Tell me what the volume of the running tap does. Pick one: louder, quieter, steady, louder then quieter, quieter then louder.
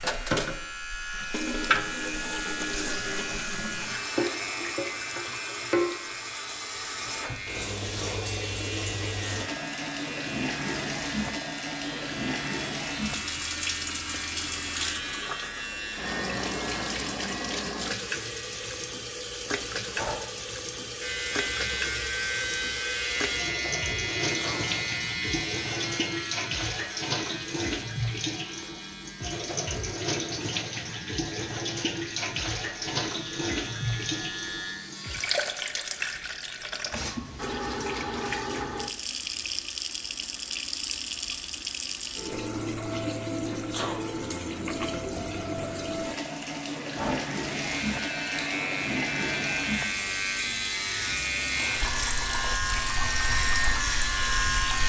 steady.